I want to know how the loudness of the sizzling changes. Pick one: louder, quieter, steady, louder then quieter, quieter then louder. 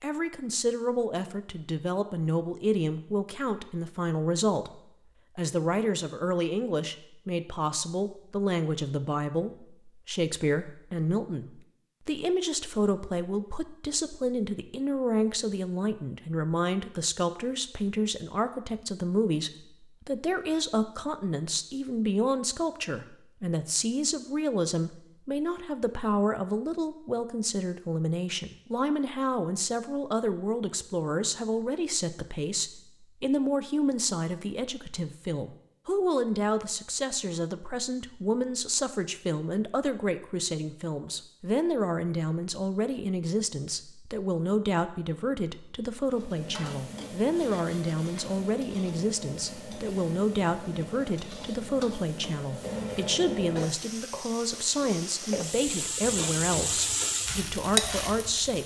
louder.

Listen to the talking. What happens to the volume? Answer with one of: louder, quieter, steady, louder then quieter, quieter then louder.
steady.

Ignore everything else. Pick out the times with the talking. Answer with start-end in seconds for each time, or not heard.
0.0-58.6.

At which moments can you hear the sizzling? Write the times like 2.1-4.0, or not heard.
46.0-58.6.